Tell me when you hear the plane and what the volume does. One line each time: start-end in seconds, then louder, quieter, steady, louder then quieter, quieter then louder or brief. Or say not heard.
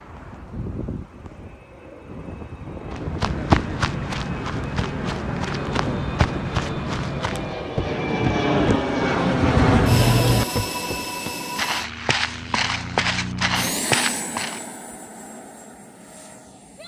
0.0-16.8 louder then quieter.